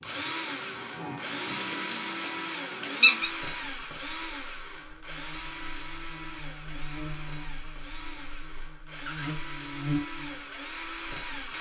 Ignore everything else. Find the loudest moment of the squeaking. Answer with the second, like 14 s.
3 s.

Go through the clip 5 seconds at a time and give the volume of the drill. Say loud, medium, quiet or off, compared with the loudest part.
loud, medium, loud.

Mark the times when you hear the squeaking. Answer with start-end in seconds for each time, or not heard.
1.6-3.3, 8.9-9.3.